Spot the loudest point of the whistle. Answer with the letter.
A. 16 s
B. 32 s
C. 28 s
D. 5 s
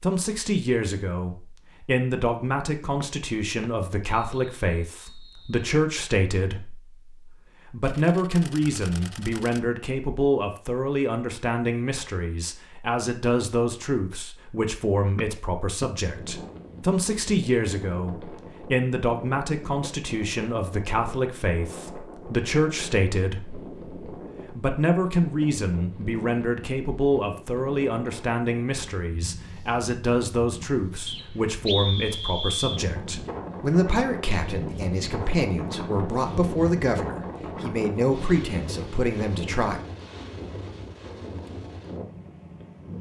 B.